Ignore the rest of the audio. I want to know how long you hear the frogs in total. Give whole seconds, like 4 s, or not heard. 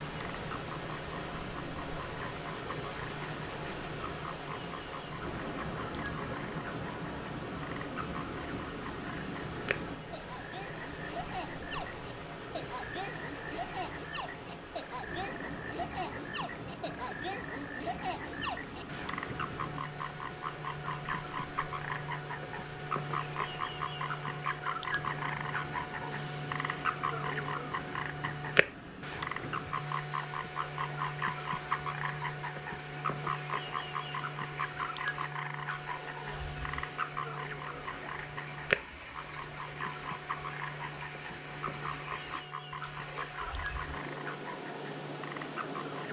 46 s.